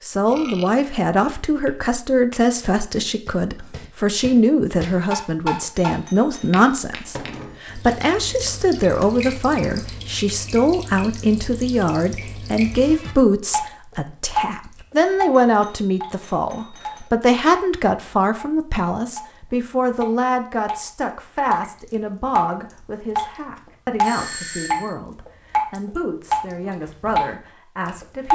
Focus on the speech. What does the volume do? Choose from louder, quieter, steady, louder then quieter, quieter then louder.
quieter.